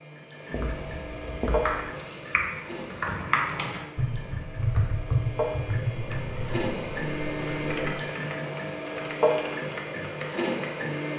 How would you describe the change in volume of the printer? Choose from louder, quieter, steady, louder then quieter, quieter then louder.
quieter then louder.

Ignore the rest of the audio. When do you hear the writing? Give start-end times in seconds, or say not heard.
0.5-1.8, 6.0-8.0.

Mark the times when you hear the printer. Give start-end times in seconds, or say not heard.
0.0-11.1.